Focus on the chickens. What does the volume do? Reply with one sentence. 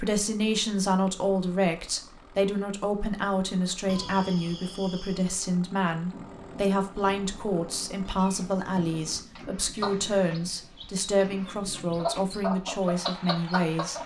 The loudness of the chickens goes up.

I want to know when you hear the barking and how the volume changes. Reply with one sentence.
You can't hear the barking here.